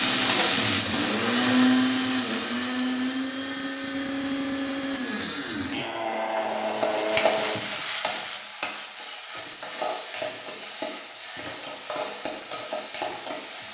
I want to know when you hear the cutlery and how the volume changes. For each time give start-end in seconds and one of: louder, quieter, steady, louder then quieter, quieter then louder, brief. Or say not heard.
not heard.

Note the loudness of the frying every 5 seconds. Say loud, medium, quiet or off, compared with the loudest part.
loud, loud, medium.